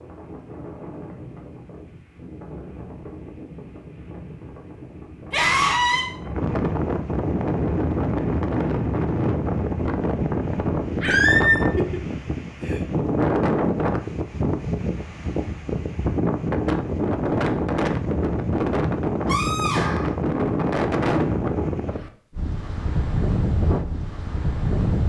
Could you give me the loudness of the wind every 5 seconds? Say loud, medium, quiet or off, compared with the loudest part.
quiet, loud, loud, loud, loud.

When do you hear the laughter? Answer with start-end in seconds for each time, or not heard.
11.8-12.8.